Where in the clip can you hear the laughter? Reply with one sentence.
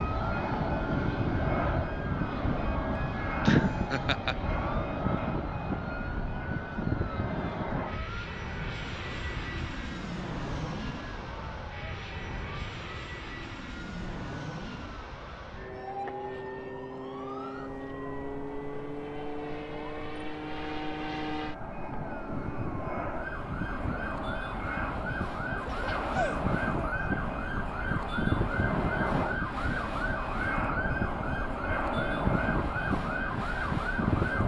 The laughter can be heard from 3.5 to 4.3 s and from 25.4 to 27.1 s.